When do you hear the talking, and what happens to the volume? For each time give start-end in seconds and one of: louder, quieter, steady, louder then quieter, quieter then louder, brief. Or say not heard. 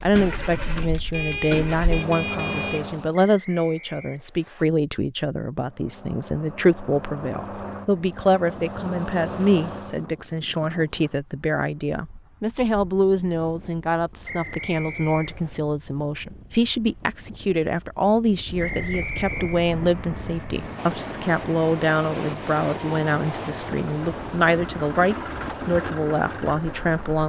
0.0-27.2 steady.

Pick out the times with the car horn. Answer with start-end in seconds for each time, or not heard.
1.1-3.0.